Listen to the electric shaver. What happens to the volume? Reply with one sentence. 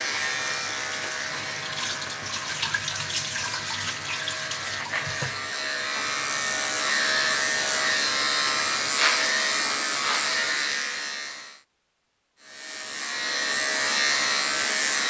The loudness of the electric shaver goes up.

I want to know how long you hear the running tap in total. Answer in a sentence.
You can hear the running tap for 9 seconds altogether.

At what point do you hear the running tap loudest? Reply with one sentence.
The loudest moment of the running tap is at 3 seconds.